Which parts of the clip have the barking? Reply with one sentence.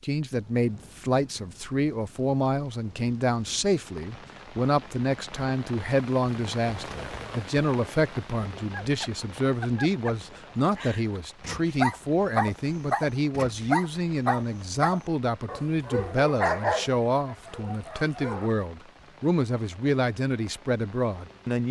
You can hear the barking from 8.8 to 18.5 s.